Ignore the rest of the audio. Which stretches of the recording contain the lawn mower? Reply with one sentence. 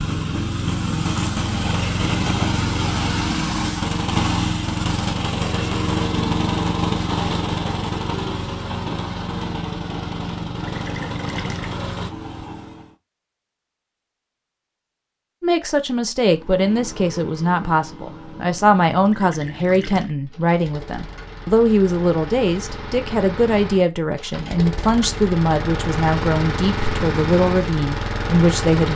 The lawn mower can be heard from 0.0 to 12.9 s and from 16.3 to 28.9 s.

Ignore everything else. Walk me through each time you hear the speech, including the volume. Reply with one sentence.
You can hear the speech from 15.4 to 28.9 s, at a steady volume.